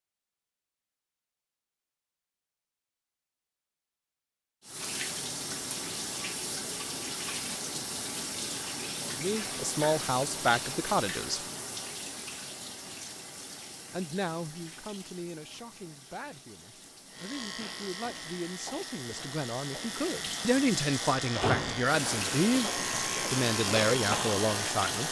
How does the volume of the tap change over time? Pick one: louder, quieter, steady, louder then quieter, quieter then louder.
quieter then louder.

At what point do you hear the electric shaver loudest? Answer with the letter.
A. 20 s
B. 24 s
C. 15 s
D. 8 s
B.